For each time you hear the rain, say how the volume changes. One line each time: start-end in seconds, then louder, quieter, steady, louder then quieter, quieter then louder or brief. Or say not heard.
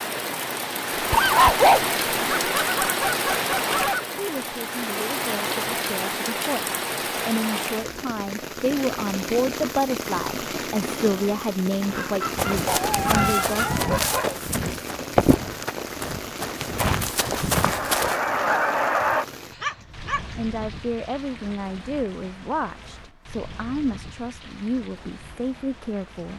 0.0-26.3 quieter.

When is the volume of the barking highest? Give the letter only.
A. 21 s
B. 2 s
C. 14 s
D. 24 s
B.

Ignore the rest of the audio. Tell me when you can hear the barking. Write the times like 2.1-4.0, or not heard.
0.9-2.5, 12.7-14.3, 19.6-20.2.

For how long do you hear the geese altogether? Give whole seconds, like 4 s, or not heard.
5 s.